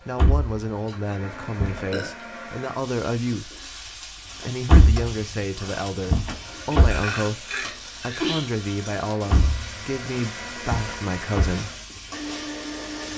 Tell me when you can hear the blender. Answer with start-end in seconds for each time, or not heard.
0.0-2.9, 6.3-13.1.